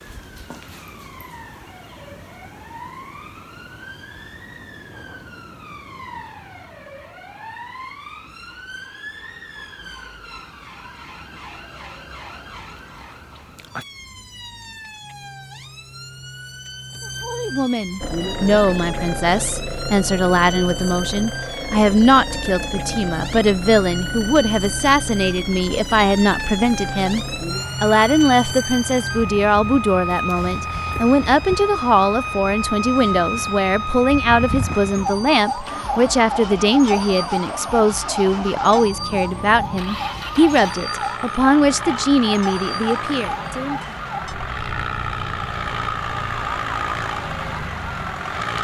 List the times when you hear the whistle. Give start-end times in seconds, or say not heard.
not heard.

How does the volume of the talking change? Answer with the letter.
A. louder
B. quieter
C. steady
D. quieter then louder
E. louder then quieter
C.